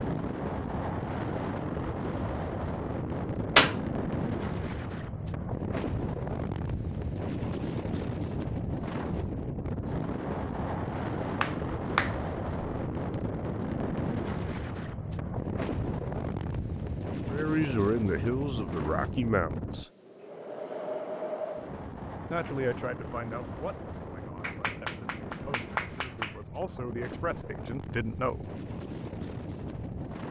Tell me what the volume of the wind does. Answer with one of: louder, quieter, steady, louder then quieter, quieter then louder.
quieter.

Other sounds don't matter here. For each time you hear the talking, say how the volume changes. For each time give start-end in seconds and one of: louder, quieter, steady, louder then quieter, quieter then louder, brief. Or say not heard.
17.3-19.9 brief
22.3-28.4 quieter then louder.